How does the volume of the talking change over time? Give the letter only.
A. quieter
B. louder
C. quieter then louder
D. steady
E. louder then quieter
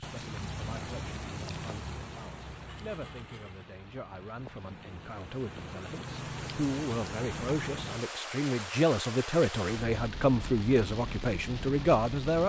B.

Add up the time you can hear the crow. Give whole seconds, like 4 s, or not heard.
not heard.